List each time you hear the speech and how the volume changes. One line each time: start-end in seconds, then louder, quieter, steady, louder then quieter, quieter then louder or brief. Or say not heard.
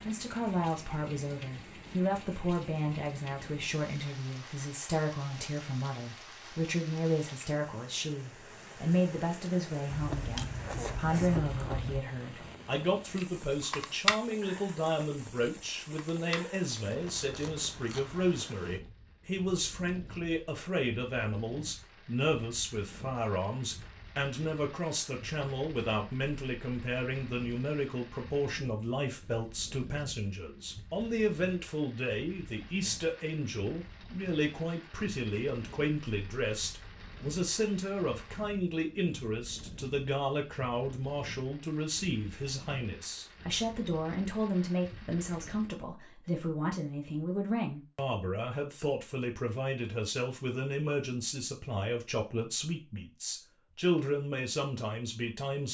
0.0-55.6 steady.